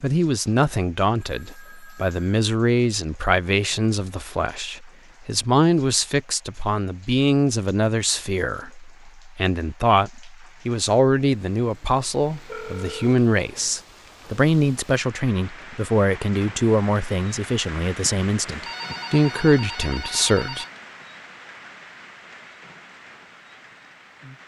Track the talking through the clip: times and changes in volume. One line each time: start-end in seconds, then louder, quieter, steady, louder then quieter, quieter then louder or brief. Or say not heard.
0.0-20.6 steady.